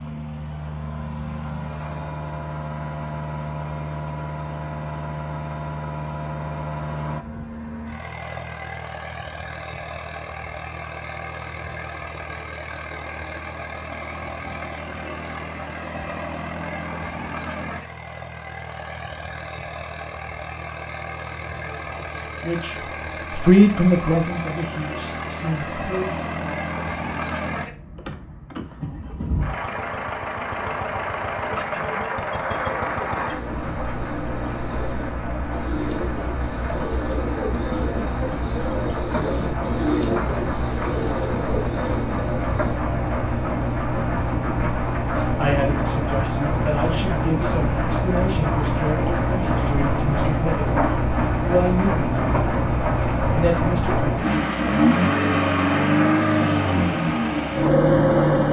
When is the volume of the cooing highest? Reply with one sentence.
The volume of the cooing peaks at 40 seconds.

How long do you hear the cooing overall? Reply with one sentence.
You can hear the cooing for 10 seconds altogether.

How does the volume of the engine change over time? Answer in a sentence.
The loudness of the engine goes up.